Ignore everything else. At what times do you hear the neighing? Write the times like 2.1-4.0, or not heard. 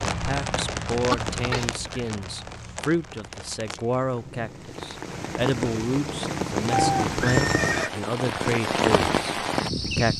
1.1-2.1, 6.9-7.9.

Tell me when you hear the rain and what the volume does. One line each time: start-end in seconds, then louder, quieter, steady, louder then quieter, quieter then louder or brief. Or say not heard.
0.0-10.1 quieter then louder.